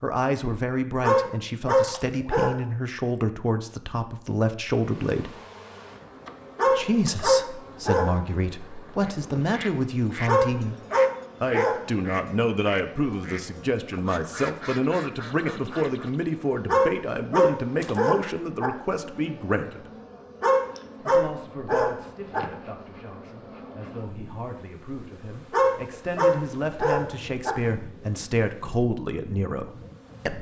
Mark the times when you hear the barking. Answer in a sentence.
You can hear the barking from 1.0 to 2.5 s, from 6.5 to 8.1 s, from 10.2 to 11.8 s, from 16.6 to 18.7 s, from 20.4 to 22.4 s and from 25.5 to 27.5 s.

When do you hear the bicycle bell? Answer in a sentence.
The bicycle bell can't be heard in this clip.